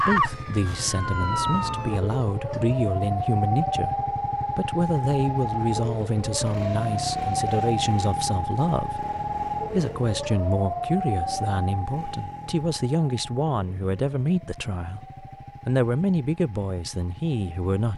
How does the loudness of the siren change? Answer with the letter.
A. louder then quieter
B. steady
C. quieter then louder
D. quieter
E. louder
D.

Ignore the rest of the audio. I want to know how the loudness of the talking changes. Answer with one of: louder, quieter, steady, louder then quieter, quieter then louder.
steady.